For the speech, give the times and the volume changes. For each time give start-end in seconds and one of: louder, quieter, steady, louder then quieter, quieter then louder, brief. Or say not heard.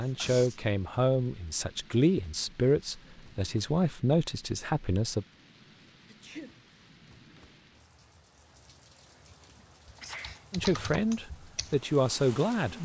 0.0-5.2 steady
10.5-12.8 brief.